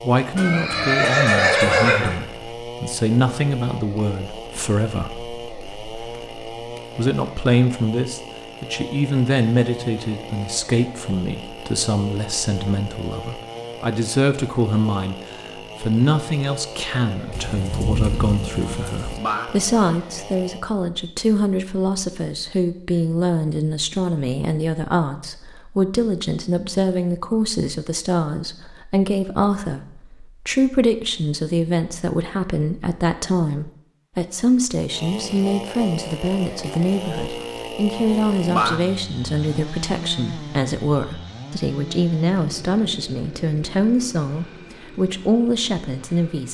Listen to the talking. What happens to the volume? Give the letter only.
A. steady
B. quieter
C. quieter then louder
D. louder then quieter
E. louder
A.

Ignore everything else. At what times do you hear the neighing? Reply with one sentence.
The neighing can be heard from 0.3 to 2.1 s.